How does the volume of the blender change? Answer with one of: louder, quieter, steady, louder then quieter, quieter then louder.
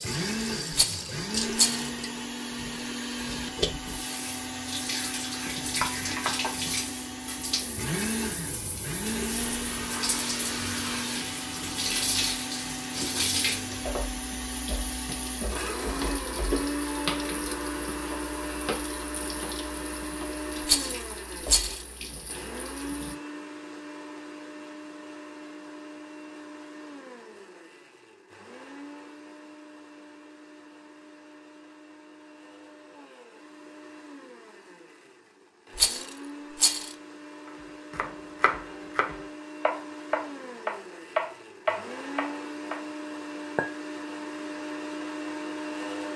quieter then louder.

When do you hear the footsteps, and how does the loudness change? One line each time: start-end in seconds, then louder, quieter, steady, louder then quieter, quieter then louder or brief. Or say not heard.
not heard.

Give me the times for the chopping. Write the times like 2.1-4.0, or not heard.
37.9-42.8.